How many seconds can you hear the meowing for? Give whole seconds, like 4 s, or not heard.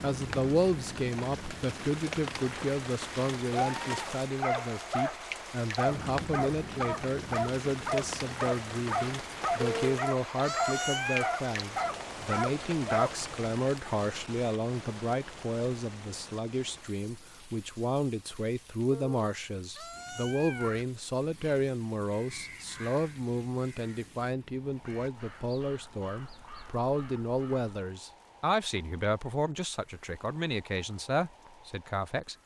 4 s.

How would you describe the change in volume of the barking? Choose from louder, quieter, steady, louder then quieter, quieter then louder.
steady.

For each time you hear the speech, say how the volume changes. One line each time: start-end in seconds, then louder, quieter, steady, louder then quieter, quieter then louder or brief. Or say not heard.
0.0-32.4 steady.